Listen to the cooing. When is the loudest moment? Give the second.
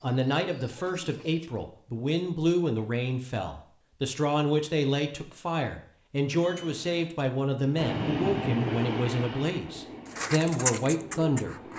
11 s.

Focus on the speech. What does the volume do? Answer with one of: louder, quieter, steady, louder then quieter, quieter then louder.
steady.